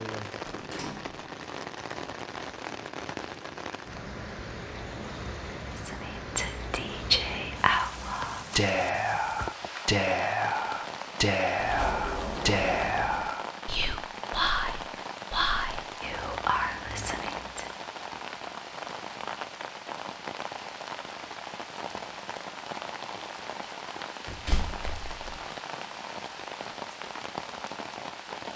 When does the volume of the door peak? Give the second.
12 s.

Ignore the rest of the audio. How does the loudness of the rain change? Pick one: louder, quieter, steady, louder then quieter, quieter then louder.
steady.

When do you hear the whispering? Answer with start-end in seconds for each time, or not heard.
5.8-17.6.